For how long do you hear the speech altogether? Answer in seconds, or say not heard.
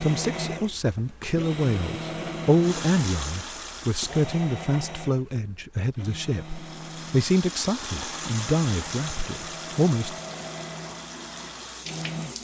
10 s.